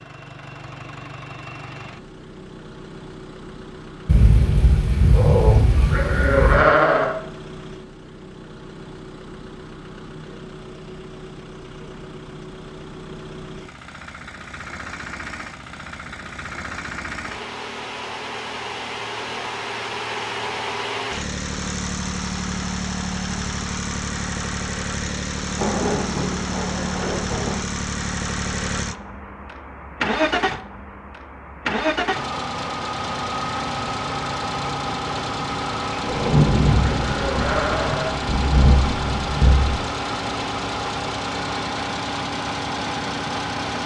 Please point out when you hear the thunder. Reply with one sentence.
You can hear the thunder from 4.0 to 6.6 s, from 25.6 to 27.6 s and from 36.0 to 39.8 s.